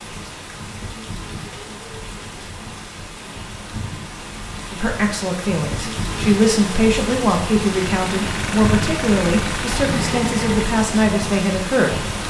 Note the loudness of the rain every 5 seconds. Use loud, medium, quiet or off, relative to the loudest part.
medium, loud, loud.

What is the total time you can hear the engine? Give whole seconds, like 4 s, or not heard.
3 s.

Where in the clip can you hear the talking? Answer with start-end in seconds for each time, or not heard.
4.7-12.1.